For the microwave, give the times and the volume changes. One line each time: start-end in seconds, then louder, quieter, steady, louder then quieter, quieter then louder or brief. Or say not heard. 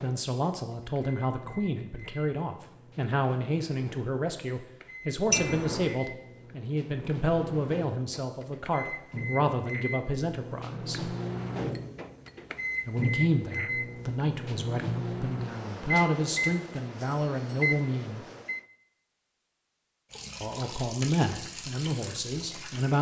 0.0-18.6 louder.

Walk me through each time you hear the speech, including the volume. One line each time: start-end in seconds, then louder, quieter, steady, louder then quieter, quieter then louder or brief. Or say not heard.
0.0-11.1 steady
12.8-18.2 steady
20.4-22.9 brief.